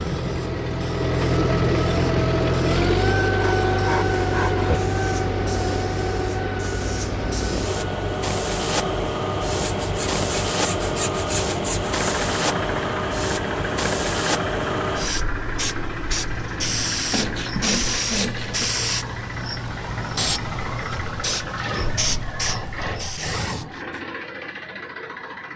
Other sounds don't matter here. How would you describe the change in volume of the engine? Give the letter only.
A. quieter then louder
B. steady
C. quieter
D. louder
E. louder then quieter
C.